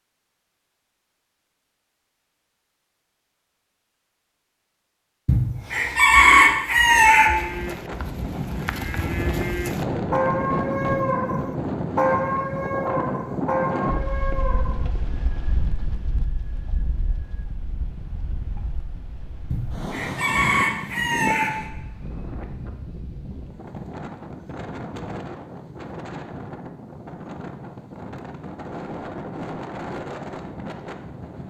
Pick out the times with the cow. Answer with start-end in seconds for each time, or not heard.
7.2-14.9.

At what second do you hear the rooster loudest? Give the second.
6 s.